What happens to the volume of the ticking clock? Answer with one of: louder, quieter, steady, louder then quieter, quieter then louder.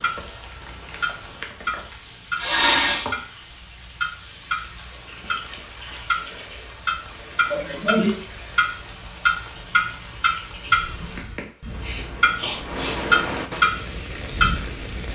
louder.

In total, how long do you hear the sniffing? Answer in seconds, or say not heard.
3 s.